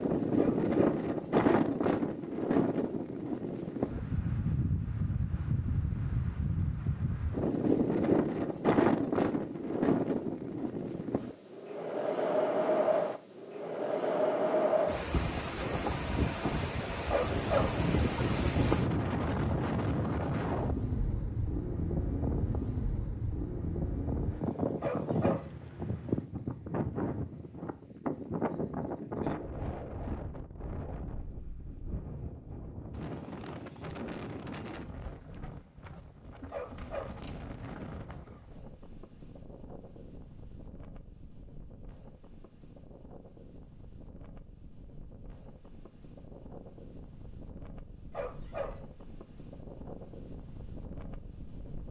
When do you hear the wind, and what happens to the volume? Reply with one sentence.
You can hear the wind from 0.0 to 51.8 s, getting quieter.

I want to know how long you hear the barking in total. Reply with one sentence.
You can hear the barking for 3 seconds altogether.